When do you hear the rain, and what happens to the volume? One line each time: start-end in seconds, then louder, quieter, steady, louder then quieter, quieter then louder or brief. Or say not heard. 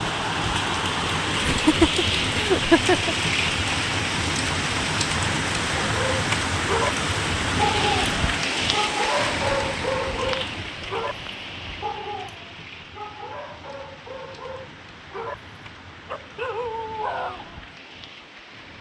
0.0-18.7 quieter.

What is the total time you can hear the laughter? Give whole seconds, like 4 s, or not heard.
2 s.